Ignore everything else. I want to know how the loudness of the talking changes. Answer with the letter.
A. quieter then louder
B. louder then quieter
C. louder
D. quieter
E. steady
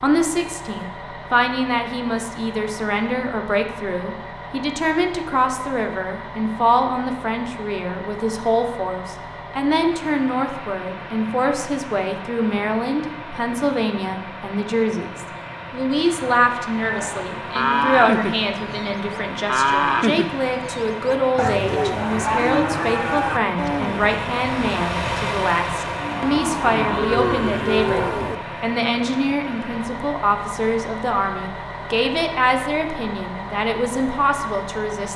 E.